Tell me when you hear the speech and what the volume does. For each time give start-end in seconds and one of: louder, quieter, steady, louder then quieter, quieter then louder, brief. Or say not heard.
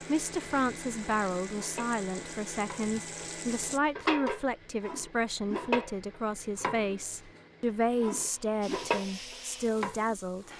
0.1-10.5 steady.